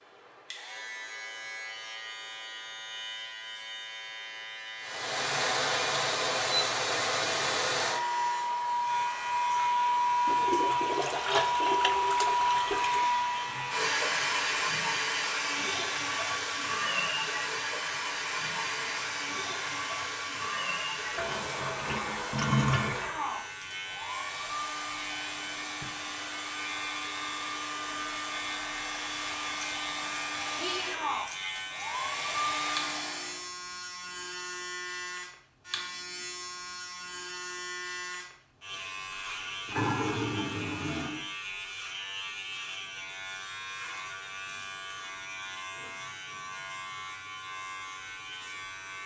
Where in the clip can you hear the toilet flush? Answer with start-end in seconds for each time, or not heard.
10.2-13.1, 21.1-23.2, 39.6-41.2.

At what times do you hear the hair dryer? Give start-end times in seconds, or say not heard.
4.8-33.5.